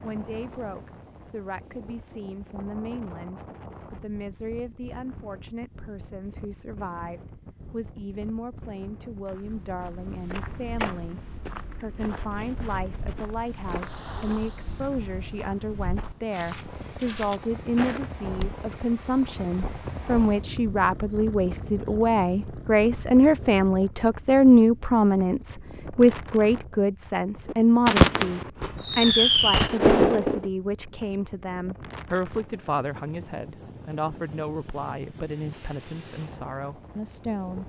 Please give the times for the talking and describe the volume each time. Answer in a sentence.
You can hear the talking from 0.0 to 11.2 s, at a steady volume; and from 11.8 to 37.6 s, getting louder then quieter.